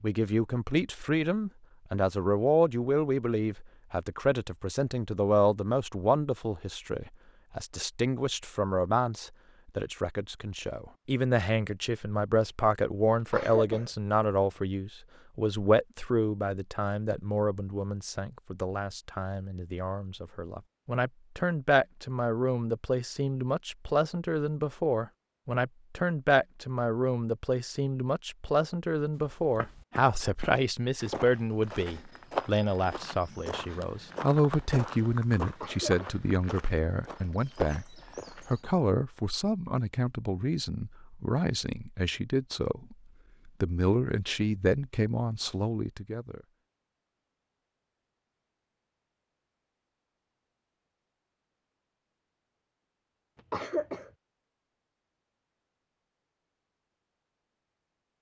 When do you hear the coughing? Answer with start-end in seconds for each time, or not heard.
13.3-13.9, 35.6-36.2, 53.5-54.1.